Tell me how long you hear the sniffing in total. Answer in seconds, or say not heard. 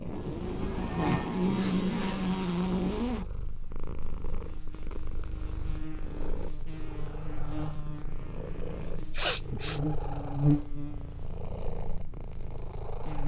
2 s.